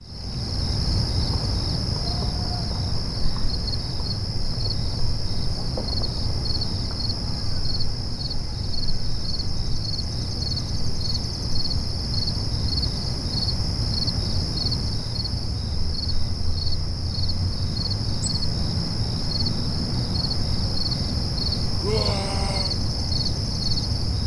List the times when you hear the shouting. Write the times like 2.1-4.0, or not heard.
21.8-22.8.